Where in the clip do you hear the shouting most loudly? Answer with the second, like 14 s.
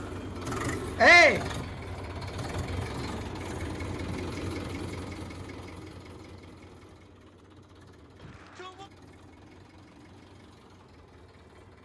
1 s.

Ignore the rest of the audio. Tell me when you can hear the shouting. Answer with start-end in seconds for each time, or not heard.
1.0-1.4, 8.2-8.9.